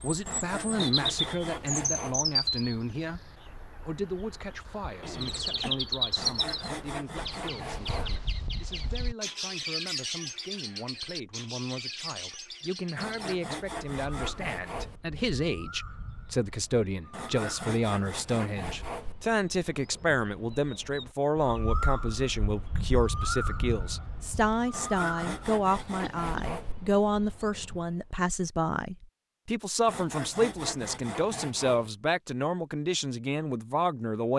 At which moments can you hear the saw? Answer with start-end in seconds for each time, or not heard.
0.2-2.1, 6.2-8.2, 12.9-15.0, 17.1-19.1, 24.7-26.8, 29.9-31.9.